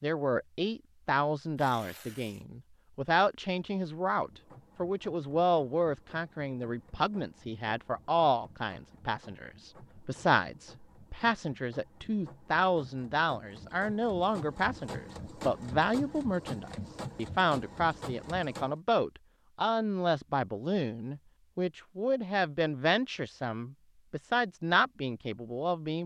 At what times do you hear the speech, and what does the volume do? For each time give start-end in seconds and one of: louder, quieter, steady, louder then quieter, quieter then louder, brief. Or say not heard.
0.0-26.0 steady.